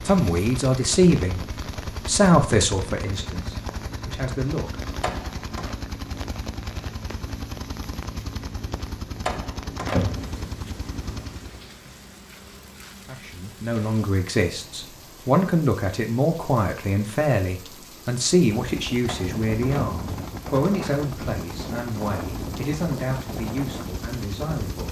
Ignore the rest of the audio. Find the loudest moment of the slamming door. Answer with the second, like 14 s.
10 s.